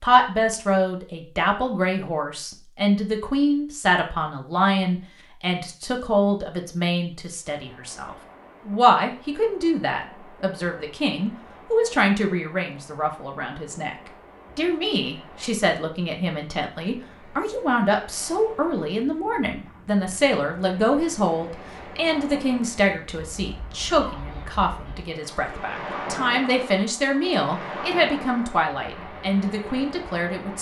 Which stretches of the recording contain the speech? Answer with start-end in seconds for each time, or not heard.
0.0-13.9, 14.6-30.5.